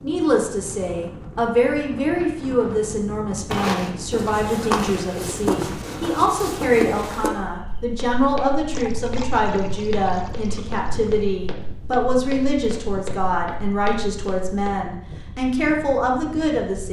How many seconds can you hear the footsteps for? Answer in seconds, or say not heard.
11 s.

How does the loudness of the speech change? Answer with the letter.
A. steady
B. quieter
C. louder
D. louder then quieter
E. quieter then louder
A.